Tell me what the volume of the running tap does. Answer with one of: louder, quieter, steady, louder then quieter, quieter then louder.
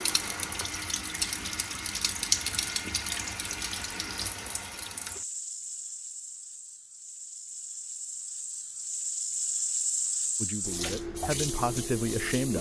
quieter then louder.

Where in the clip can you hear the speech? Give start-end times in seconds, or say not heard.
10.3-12.5.